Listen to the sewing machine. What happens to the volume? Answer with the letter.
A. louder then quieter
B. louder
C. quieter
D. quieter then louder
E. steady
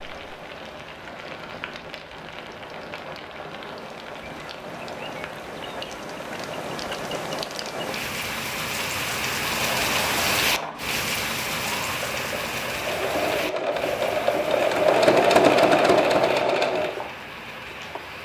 A.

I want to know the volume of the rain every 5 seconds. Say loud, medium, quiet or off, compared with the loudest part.
medium, loud, loud, medium.